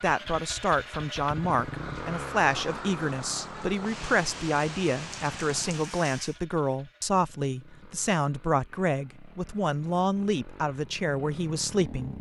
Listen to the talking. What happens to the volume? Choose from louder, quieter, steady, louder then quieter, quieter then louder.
steady.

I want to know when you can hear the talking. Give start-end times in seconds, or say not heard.
0.0-12.1.